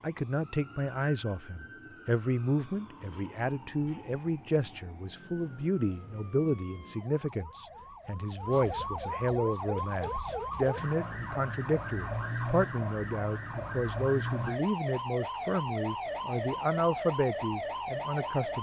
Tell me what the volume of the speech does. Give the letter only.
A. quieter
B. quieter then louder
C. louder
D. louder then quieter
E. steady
E.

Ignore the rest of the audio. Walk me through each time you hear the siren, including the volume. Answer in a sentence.
You can hear the siren from 0.0 to 18.5 s, getting louder.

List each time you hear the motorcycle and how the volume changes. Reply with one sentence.
You can't hear the motorcycle here.